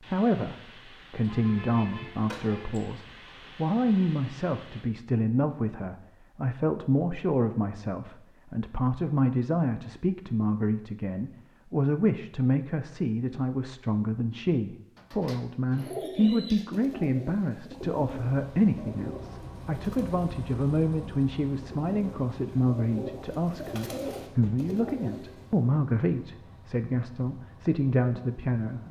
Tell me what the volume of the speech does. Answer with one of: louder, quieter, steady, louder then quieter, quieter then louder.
steady.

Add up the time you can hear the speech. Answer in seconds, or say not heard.
29 s.